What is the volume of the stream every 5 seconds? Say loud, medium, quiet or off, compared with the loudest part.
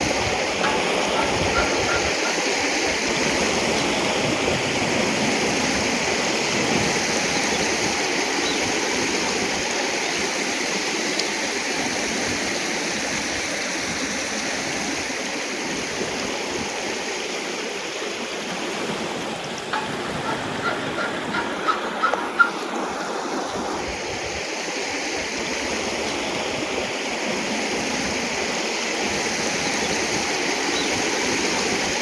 loud, loud, loud, medium, medium, loud, loud.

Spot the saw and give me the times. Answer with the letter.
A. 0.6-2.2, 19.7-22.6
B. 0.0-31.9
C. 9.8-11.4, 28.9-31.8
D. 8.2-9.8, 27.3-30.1
A.